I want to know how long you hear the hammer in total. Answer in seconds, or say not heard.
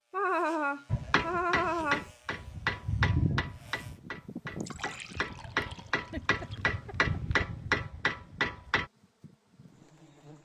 8 s.